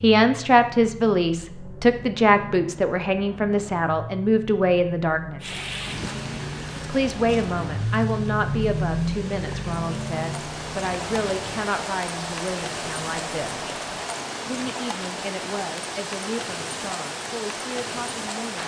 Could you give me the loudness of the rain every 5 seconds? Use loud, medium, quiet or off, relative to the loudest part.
off, medium, loud, loud.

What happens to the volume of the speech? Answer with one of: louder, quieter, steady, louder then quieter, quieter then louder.
quieter.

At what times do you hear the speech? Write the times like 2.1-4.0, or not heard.
0.0-5.5, 6.8-13.7, 14.4-18.6.